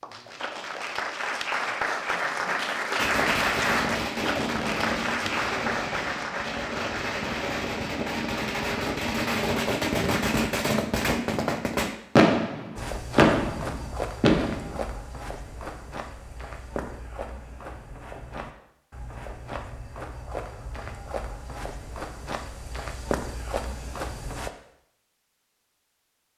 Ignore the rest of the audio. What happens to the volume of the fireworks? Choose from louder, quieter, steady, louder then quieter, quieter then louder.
louder.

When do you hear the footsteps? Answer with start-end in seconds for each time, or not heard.
12.8-24.5.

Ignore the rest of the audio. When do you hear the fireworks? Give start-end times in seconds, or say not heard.
3.0-14.8.